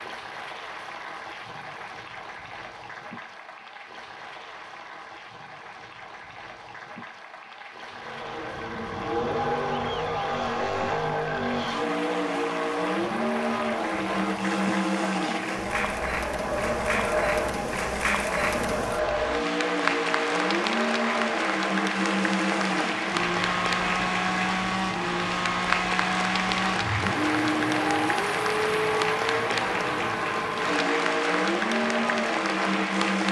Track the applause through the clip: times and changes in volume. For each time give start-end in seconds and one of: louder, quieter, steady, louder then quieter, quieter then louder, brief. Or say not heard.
0.0-33.2 louder.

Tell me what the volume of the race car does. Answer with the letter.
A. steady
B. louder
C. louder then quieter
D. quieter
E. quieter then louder
A.